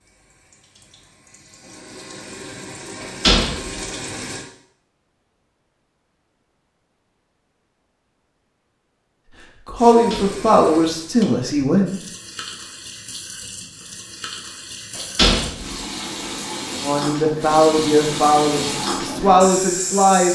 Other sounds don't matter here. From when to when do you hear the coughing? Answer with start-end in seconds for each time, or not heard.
not heard.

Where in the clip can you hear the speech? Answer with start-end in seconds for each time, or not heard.
9.7-12.0, 16.8-20.3.